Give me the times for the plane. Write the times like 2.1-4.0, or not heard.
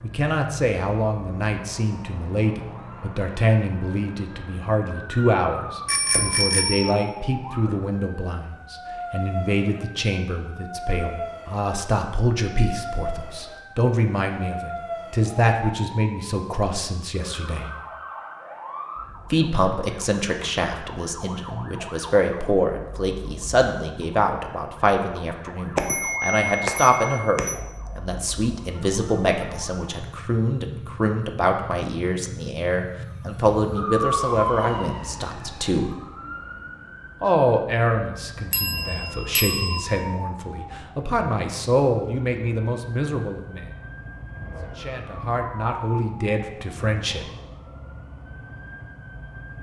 not heard.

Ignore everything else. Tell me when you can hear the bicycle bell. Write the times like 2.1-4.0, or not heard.
5.8-7.0, 25.8-27.6, 38.5-39.9.